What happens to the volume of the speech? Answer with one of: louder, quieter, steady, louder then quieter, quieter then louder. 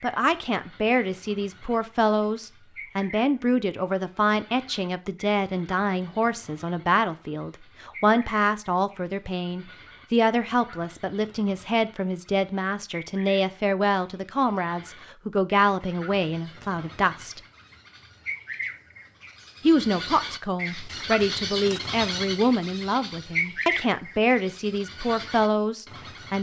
steady.